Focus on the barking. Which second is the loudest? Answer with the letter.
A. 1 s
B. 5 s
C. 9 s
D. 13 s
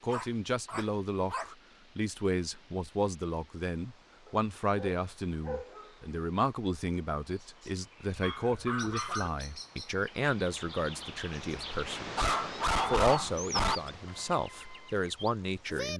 D.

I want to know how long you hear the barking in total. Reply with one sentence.
The barking can be heard for 6 seconds in total.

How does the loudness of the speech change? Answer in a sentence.
The volume of the speech stays about the same.